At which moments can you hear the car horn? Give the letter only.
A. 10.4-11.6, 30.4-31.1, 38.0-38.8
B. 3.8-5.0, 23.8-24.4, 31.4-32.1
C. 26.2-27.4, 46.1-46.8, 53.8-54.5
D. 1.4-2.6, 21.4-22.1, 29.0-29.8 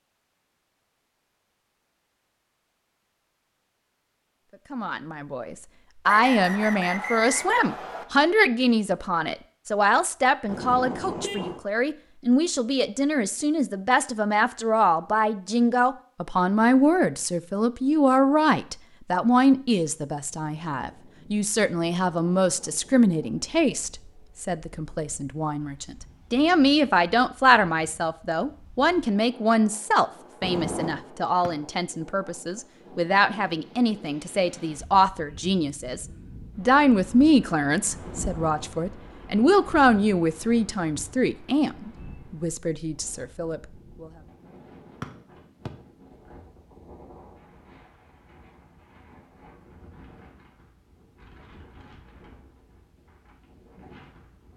A.